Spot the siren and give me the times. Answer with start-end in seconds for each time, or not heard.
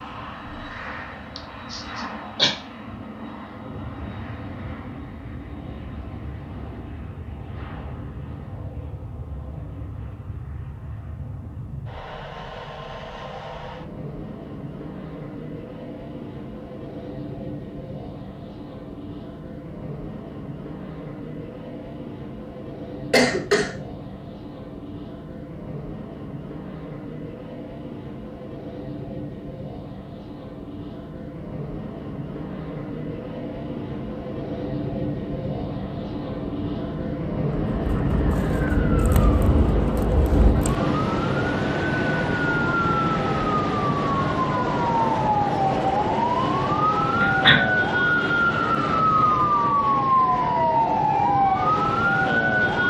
37.6-52.8.